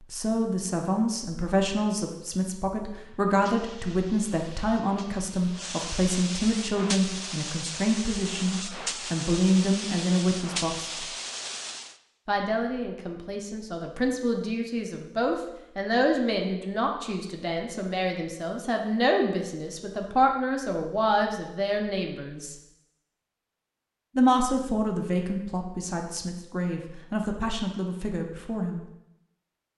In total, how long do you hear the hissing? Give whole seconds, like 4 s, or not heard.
9 s.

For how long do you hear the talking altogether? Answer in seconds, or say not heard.
26 s.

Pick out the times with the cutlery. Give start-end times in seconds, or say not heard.
not heard.